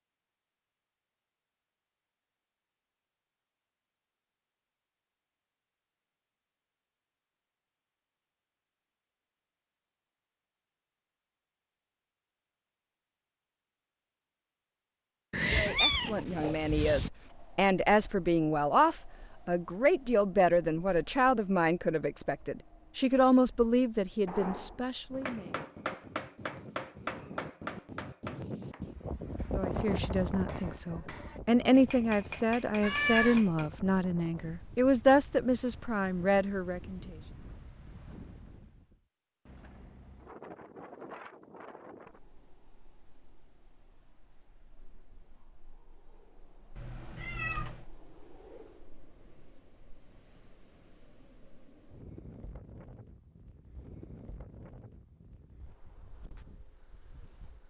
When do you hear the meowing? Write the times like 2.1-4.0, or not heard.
15.3-17.1, 32.8-33.5, 46.8-47.9.